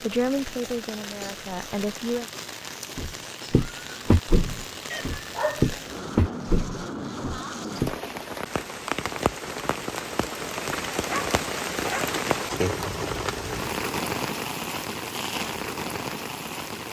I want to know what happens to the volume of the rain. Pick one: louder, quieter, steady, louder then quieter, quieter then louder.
louder.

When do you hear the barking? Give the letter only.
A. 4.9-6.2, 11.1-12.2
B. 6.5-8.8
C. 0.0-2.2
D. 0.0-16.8
A.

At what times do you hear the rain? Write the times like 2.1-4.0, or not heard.
0.0-16.8.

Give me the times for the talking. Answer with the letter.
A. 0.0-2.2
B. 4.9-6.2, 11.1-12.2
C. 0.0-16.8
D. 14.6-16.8
A.